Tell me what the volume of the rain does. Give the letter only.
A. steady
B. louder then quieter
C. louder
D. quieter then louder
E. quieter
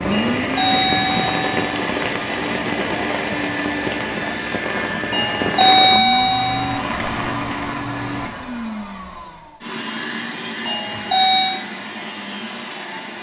A.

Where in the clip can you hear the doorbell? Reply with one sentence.
The doorbell can be heard from 0.1 to 1.6 s, from 5.1 to 6.8 s and from 10.7 to 11.7 s.